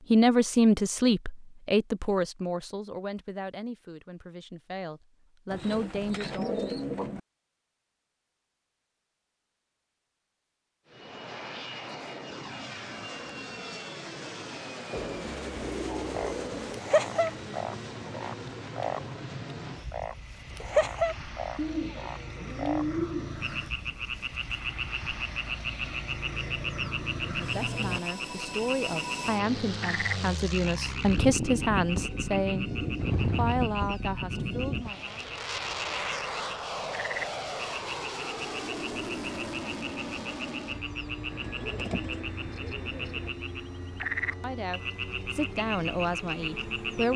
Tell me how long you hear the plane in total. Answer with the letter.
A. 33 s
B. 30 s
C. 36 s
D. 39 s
C.